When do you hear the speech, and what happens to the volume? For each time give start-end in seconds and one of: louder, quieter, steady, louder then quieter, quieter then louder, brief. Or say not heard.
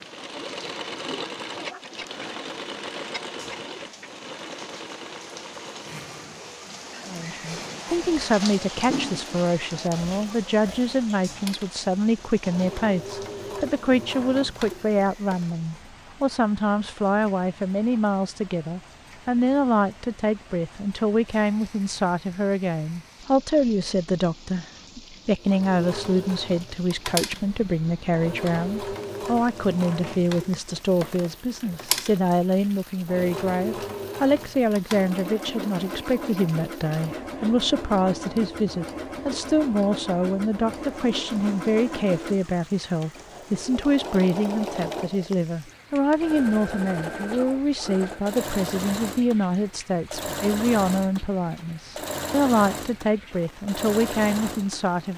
7.0-55.1 steady.